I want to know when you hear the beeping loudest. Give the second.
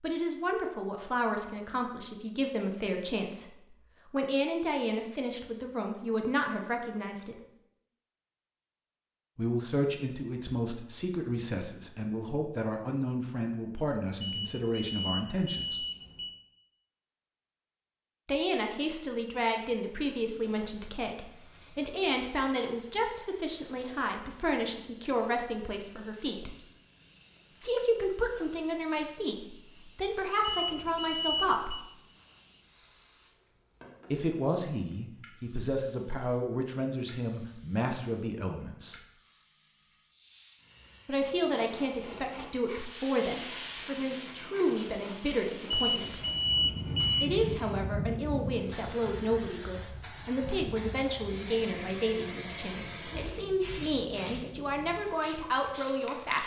47 s.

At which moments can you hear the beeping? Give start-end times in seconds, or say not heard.
14.2-16.4, 30.4-31.9, 45.7-47.2.